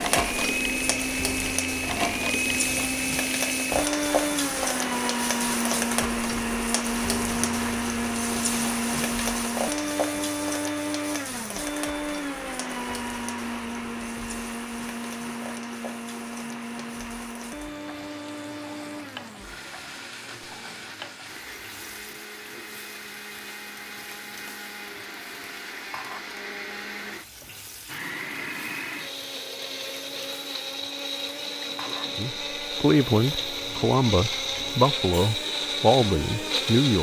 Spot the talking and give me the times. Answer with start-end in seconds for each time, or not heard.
32.0-36.9.